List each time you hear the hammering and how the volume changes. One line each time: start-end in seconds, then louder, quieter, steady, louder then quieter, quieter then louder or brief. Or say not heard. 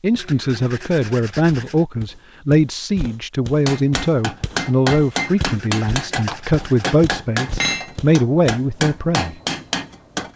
3.6-10.3 steady.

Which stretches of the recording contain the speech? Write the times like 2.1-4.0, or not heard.
0.0-9.3.